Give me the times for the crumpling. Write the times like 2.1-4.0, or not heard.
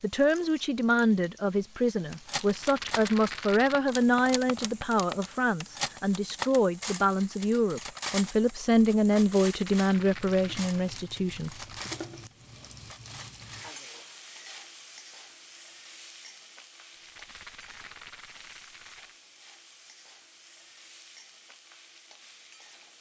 10.8-12.1.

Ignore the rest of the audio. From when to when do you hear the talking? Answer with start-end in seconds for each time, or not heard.
0.0-11.9.